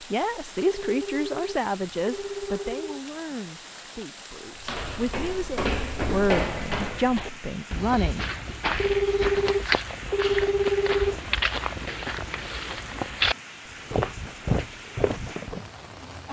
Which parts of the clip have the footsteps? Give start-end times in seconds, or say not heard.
4.5-15.7.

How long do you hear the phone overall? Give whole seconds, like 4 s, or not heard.
5 s.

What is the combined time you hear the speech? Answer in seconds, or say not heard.
8 s.